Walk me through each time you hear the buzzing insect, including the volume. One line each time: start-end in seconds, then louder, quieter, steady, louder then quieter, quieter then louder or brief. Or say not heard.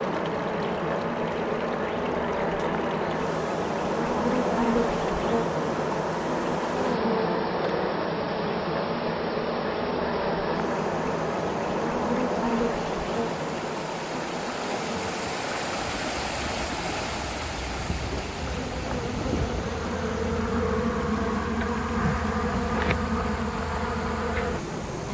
0.0-25.0 quieter then louder.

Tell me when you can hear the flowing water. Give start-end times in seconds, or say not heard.
0.0-25.0.